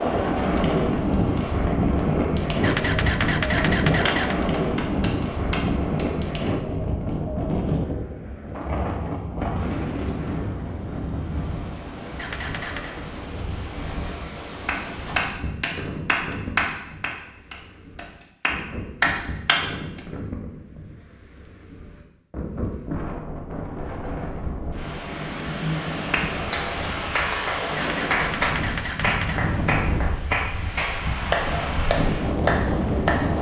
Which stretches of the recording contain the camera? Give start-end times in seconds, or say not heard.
2.6-4.3, 12.2-13.0, 27.8-29.4.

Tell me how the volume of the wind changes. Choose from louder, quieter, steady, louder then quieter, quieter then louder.
quieter then louder.